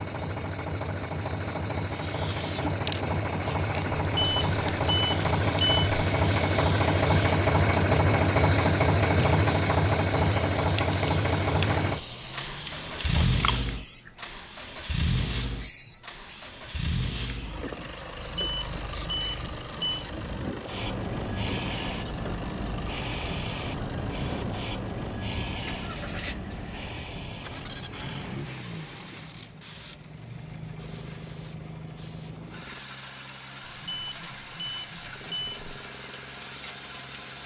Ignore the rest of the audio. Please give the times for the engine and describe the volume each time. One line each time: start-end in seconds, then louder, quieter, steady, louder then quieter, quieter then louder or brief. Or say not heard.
0.0-37.4 quieter.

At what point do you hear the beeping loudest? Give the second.
4 s.